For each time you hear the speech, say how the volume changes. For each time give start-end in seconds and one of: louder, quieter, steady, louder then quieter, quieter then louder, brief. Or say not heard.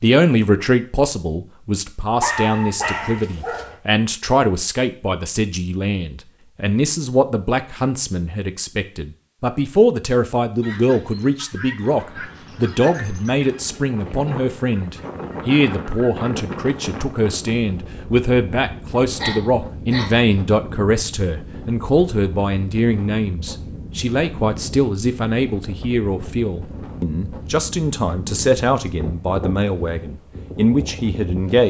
0.0-31.6 steady.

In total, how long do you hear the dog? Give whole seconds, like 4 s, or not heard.
3 s.